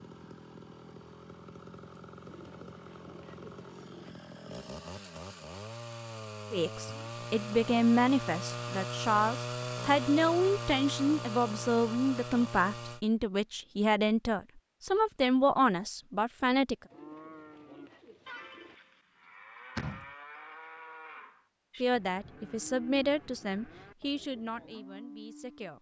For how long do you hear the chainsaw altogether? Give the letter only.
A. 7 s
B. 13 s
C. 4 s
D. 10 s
B.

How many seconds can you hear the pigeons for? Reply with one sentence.
You can hear the pigeons for 4 seconds altogether.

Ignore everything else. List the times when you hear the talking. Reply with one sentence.
You can hear the talking from 6.5 to 16.8 s and from 21.8 to 25.7 s.